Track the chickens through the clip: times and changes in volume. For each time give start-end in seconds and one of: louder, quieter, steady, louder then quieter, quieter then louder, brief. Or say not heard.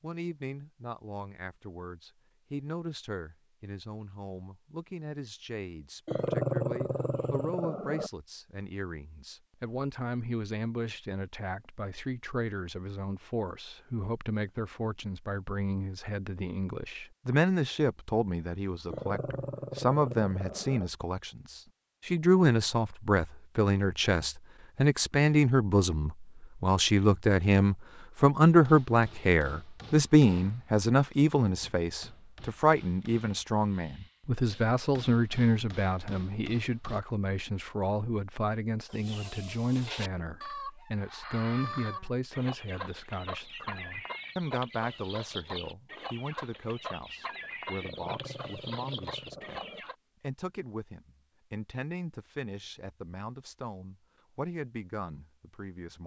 38.9-50.0 steady.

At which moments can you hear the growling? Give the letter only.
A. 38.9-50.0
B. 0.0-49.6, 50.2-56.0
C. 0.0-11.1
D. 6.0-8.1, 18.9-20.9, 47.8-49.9
D.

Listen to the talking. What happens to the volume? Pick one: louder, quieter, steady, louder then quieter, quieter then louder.
louder then quieter.